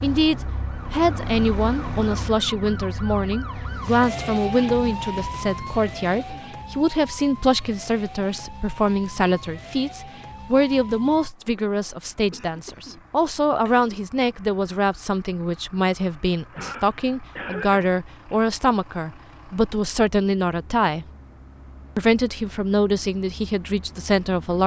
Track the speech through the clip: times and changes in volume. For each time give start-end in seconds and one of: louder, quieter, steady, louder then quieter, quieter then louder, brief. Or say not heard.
0.0-21.1 steady
21.9-24.6 brief.